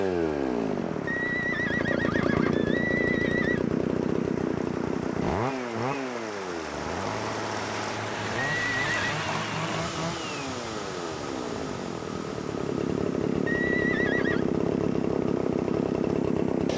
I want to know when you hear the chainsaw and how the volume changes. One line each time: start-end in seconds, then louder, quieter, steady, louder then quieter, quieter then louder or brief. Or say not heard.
0.0-16.7 quieter then louder.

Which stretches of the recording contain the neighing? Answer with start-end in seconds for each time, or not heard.
1.1-3.6, 8.6-9.0, 13.4-14.4.